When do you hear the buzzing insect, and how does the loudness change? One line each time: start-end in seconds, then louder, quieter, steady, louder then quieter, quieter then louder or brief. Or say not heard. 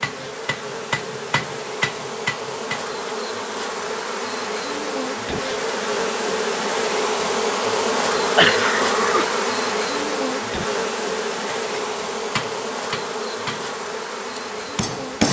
0.0-15.2 louder then quieter.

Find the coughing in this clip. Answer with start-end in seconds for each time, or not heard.
8.3-9.4.